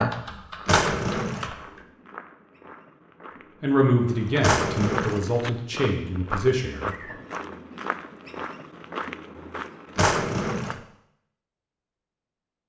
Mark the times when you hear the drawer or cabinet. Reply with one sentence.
The drawer or cabinet can be heard from 0.7 to 1.5 s, from 4.4 to 5.2 s and from 9.9 to 10.8 s.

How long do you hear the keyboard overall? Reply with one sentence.
The keyboard can be heard for 2 seconds in total.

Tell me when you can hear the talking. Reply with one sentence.
You can hear the talking from 3.6 to 7.2 s.